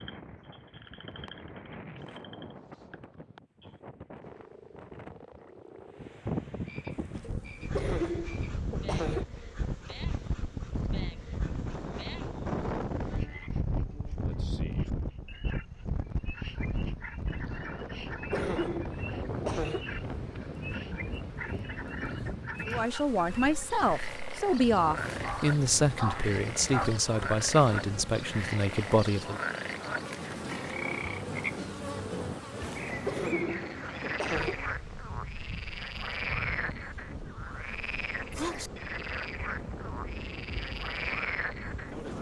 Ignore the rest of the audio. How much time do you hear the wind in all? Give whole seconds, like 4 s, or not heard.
42 s.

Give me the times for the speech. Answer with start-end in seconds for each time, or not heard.
22.6-29.4.